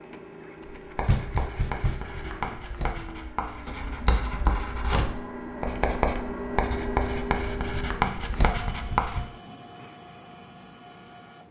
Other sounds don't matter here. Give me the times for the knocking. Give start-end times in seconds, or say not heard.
1.1-2.0, 8.4-9.4.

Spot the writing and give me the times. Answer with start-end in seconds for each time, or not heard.
0.8-9.2.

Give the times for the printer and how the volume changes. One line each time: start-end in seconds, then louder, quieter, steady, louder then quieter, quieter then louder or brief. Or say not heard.
0.0-11.4 louder then quieter.